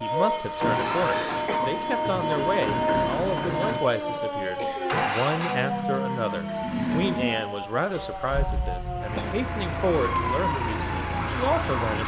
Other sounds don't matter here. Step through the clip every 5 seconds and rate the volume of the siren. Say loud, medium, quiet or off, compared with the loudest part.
loud, medium, loud.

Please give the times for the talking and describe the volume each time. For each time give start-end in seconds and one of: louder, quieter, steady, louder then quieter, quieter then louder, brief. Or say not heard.
0.0-12.0 steady.